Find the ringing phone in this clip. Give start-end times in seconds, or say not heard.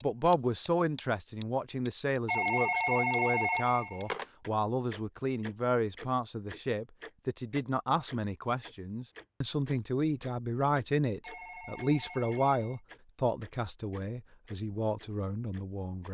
2.2-4.2, 11.2-12.8.